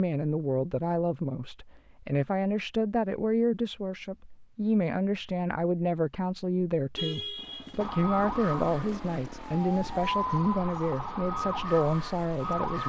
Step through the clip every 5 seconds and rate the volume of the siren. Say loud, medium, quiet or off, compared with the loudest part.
off, loud, loud.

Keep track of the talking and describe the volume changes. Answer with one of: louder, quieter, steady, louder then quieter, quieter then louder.
steady.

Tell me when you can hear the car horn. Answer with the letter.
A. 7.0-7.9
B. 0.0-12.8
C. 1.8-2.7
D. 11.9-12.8
A.